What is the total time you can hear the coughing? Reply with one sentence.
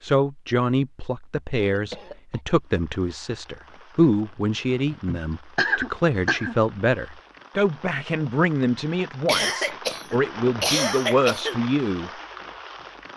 The coughing can be heard for 5 seconds in total.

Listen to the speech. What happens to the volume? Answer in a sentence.
The volume of the speech stays about the same.